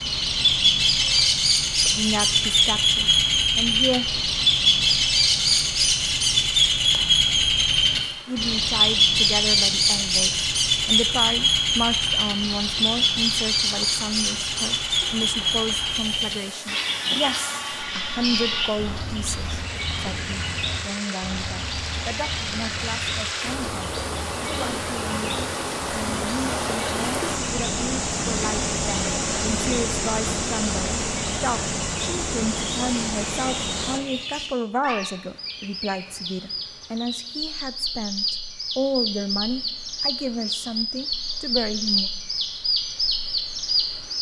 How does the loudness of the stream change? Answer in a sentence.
The volume of the stream goes up.